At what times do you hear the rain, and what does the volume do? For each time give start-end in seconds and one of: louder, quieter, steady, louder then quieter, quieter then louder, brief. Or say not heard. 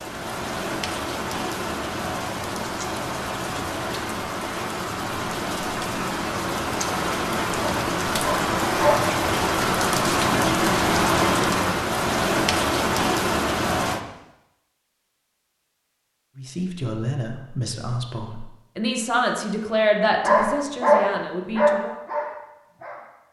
0.0-14.0 louder.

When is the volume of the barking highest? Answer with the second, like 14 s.
21 s.